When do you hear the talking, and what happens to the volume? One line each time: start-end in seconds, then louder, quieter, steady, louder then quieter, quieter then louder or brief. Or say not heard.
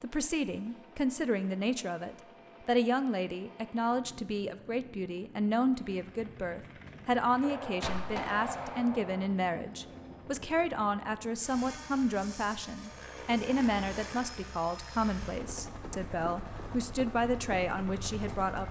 0.0-18.6 steady.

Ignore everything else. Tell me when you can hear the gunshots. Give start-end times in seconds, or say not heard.
7.4-9.3.